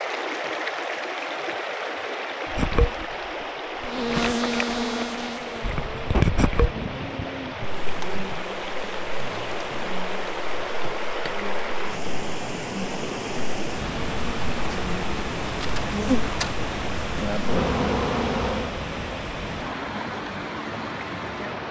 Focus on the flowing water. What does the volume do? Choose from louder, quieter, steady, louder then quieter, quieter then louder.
steady.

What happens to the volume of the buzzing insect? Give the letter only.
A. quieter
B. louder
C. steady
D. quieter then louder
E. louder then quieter
D.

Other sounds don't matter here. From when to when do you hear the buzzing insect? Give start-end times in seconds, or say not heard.
2.5-18.8.